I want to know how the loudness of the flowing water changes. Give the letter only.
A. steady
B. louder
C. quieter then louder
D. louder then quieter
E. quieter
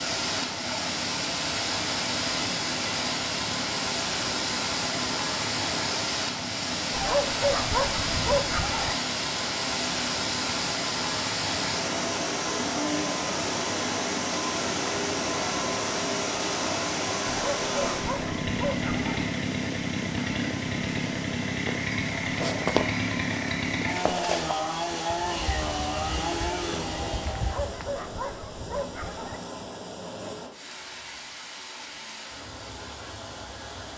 E.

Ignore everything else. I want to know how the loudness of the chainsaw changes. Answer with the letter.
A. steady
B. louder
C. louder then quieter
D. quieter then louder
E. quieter
B.